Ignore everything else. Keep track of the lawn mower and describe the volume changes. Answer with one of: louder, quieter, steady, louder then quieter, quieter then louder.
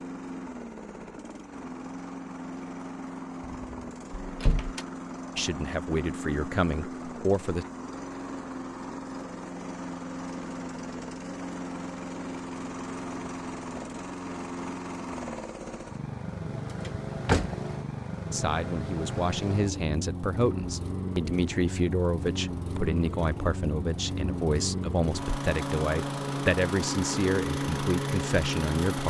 louder.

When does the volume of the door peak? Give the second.
17 s.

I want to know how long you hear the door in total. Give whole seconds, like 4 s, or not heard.
2 s.